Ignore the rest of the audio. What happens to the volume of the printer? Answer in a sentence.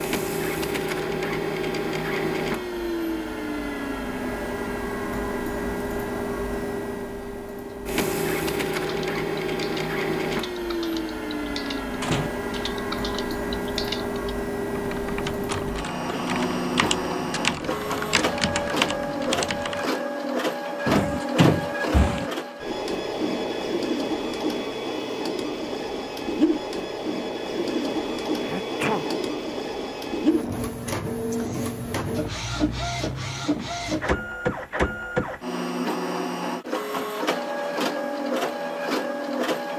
The loudness of the printer stays about the same.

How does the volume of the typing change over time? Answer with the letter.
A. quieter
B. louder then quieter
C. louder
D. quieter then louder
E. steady
C.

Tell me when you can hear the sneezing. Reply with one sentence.
You can hear the sneezing from 28.4 to 29.1 s.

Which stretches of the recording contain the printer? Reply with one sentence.
You can hear the printer from 0.0 to 39.7 s.